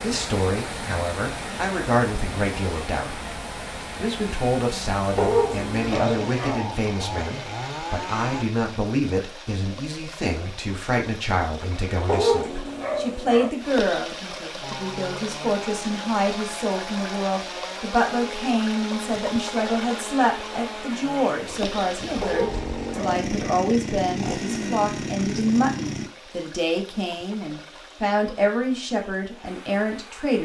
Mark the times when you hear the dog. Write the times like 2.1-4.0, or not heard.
5.2-6.6, 12.1-13.5, 22.2-23.6.